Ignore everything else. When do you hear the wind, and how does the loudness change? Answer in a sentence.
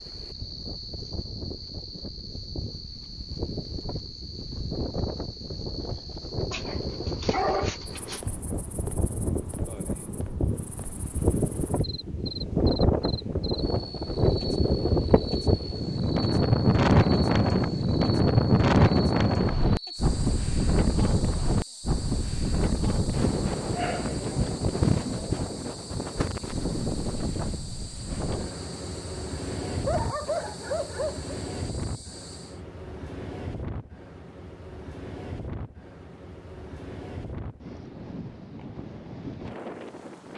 The wind can be heard from 0.0 to 40.3 s, getting louder then quieter.